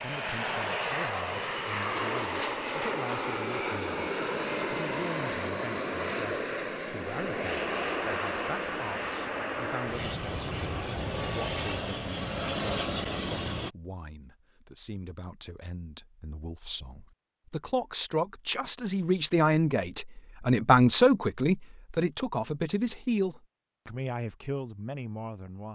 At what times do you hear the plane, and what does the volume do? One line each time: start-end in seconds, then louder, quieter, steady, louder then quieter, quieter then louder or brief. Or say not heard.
0.0-13.8 steady.